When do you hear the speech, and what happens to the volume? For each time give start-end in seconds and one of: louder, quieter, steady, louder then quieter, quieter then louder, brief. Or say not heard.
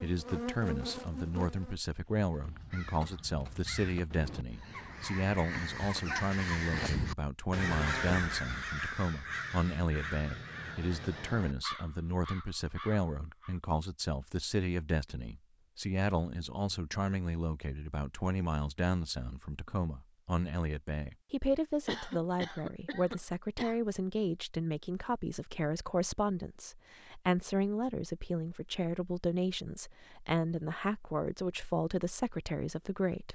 0.0-33.3 steady.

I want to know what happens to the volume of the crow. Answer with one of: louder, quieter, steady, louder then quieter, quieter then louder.
louder then quieter.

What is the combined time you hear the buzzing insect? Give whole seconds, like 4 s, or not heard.
2 s.